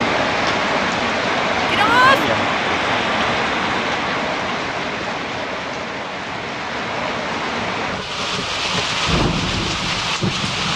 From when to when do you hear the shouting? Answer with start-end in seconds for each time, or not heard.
1.6-2.2.